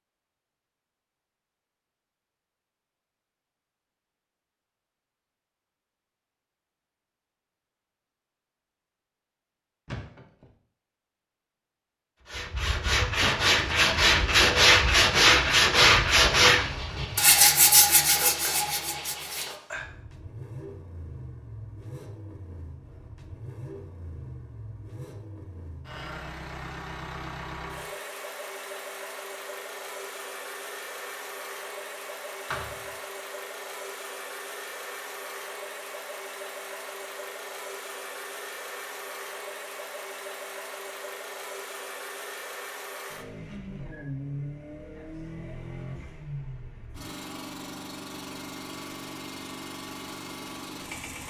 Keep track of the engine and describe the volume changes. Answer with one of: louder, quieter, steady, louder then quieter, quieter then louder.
steady.